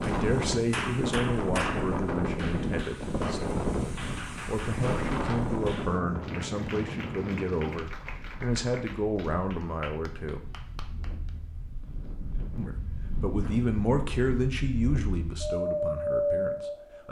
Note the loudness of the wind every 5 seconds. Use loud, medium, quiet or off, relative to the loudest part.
loud, medium, quiet, loud.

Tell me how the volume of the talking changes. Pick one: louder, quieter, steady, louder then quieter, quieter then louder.
steady.